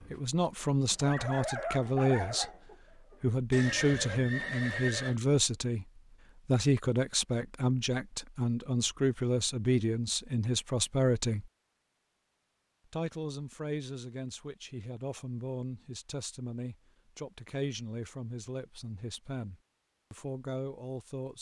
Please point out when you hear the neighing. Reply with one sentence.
You can hear the neighing from 3.5 to 5.2 s.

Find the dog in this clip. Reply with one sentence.
You can hear the dog from 0.0 to 3.2 s.